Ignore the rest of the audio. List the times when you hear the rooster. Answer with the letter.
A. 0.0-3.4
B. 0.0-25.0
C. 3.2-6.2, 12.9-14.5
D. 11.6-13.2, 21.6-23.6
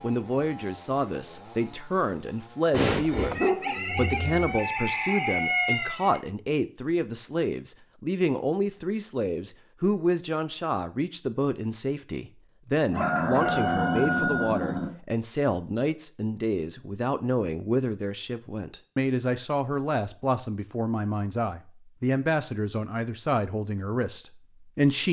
C.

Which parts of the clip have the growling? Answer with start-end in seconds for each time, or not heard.
2.9-4.5, 12.9-14.9.